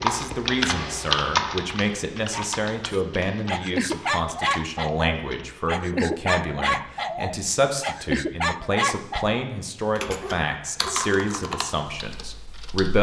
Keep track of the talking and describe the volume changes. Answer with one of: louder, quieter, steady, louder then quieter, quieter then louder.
steady.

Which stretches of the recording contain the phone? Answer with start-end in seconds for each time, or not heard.
not heard.